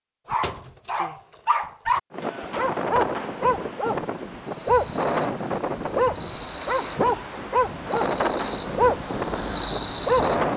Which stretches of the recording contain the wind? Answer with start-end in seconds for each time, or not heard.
2.1-10.5.